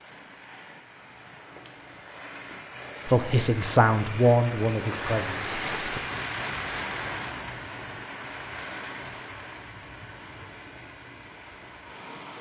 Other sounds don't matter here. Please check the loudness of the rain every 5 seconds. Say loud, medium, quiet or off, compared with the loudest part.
medium, loud, medium.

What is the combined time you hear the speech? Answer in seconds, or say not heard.
3 s.